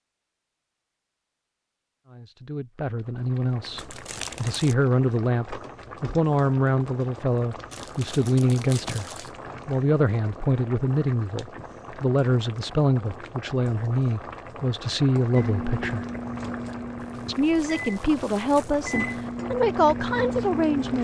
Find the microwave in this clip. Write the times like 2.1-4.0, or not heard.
15.3-20.9.